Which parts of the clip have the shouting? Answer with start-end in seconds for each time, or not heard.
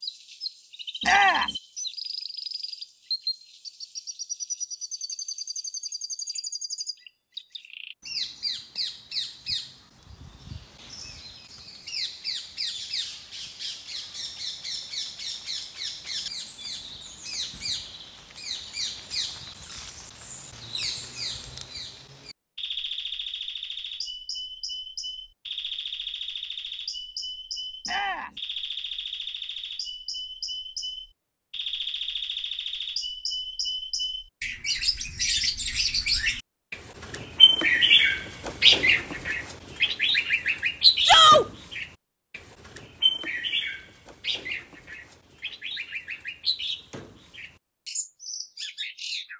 1.0-1.5, 27.9-28.3, 41.0-41.5.